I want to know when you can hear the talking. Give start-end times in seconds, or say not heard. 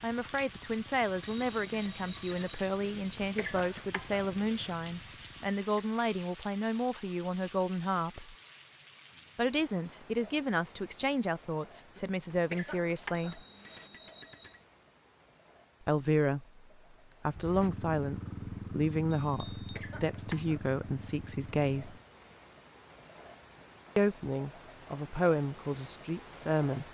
0.0-8.3, 9.3-13.4, 15.8-16.6, 17.2-21.9, 23.9-26.8.